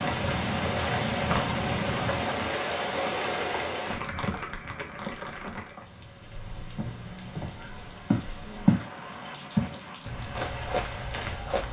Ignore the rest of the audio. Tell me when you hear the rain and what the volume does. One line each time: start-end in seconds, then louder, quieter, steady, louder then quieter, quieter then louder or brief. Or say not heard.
0.0-11.6 quieter.